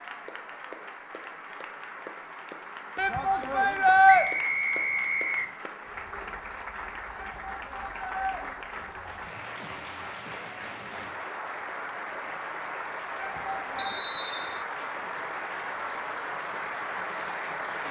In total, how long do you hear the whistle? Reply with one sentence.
You can hear the whistle for 2 seconds altogether.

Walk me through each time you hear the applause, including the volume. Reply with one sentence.
You can hear the applause from 0.0 to 17.8 s, getting louder.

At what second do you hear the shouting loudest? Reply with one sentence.
The volume of the shouting peaks at 4 seconds.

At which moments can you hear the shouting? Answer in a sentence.
You can hear the shouting from 3.0 to 4.2 s, from 7.2 to 8.4 s and from 13.2 to 14.1 s.